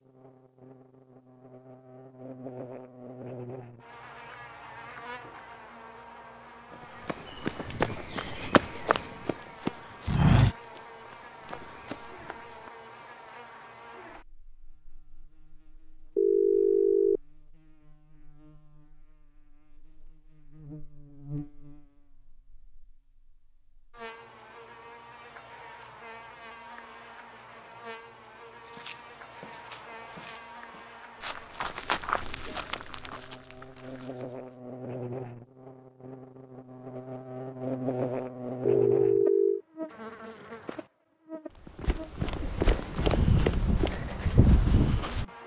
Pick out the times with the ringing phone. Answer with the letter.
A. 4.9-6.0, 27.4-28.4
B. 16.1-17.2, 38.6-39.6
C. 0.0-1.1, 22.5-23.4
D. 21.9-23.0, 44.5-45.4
B.